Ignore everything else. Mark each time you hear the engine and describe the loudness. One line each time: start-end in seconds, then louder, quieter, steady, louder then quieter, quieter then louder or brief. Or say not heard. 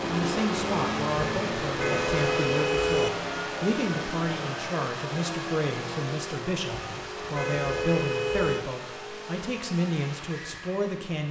0.0-11.2 quieter.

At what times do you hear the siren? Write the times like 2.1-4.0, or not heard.
not heard.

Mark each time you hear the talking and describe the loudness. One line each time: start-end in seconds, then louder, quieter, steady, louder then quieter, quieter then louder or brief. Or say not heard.
0.1-11.2 steady.